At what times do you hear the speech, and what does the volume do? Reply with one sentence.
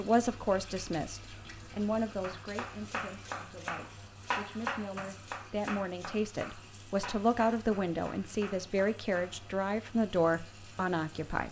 You can hear the speech from 0.0 to 11.4 s, getting quieter then louder.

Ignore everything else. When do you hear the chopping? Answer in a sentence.
The chopping can be heard from 1.2 to 9.4 s.